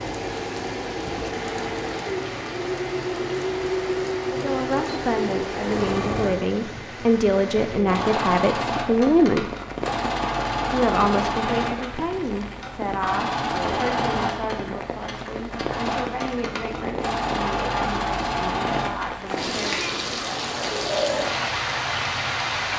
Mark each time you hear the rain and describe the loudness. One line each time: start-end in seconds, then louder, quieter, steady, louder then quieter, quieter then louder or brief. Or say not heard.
0.0-22.7 louder.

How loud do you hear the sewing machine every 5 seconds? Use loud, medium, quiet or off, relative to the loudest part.
loud, loud, loud, loud, medium.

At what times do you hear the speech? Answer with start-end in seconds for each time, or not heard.
4.3-9.5, 10.7-19.9.